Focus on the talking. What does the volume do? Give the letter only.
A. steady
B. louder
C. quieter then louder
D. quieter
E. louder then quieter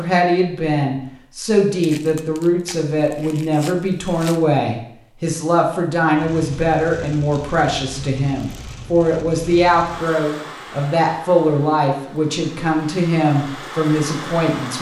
A.